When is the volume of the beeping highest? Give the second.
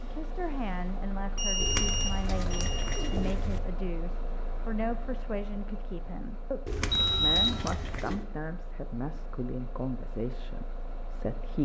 7 s.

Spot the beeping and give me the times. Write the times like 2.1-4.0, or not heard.
1.4-3.1, 6.9-7.8.